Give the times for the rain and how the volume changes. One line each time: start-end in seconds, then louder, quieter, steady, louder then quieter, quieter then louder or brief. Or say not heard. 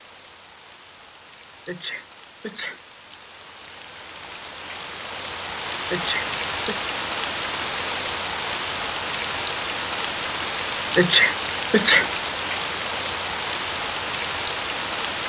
0.0-15.2 louder.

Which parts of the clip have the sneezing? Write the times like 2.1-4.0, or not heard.
1.6-2.8, 5.9-6.8, 10.9-12.1.